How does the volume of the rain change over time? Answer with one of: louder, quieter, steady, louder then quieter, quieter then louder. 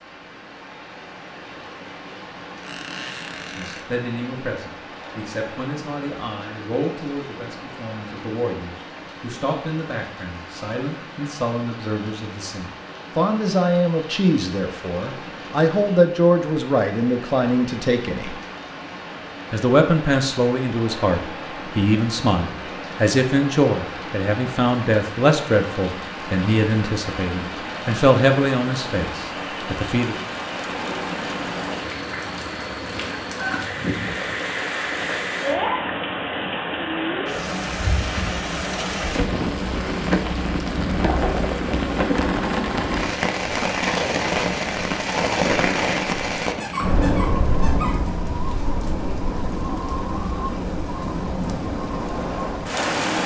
louder.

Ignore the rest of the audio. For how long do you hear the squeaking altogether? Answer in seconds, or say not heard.
3 s.